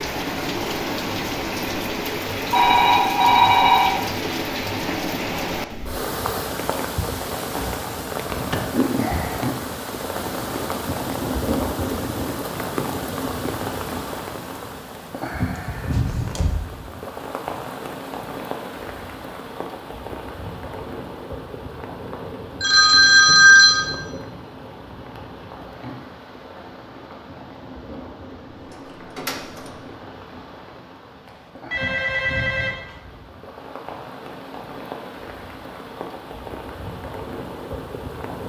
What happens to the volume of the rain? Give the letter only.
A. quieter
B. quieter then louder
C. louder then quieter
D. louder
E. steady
A.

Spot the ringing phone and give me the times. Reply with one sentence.
The ringing phone can be heard from 2.5 to 4.0 s, from 22.6 to 23.9 s and from 31.2 to 33.0 s.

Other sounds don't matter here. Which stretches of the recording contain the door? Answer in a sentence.
The door can be heard from 8.2 to 8.7 s, from 15.6 to 16.6 s and from 28.7 to 29.9 s.